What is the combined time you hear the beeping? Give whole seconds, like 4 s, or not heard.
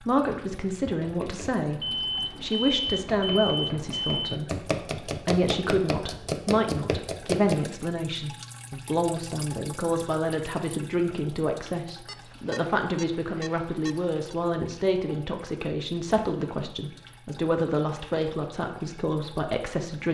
5 s.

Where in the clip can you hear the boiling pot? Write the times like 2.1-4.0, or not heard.
not heard.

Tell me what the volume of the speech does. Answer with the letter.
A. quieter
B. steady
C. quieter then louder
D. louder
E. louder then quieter
B.